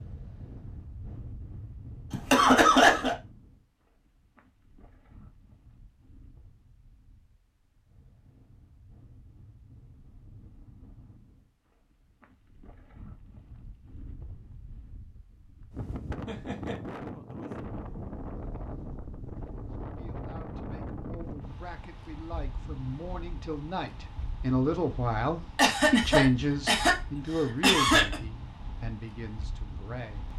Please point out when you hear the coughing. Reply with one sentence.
The coughing can be heard from 2.1 to 3.1 s, from 16.2 to 16.8 s and from 25.6 to 28.2 s.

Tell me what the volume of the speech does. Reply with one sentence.
The loudness of the speech goes up, then down.